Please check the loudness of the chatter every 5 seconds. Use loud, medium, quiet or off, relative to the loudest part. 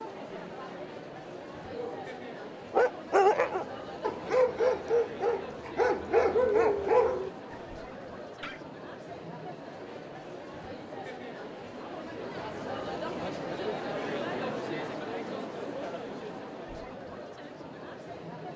medium, medium, loud, loud.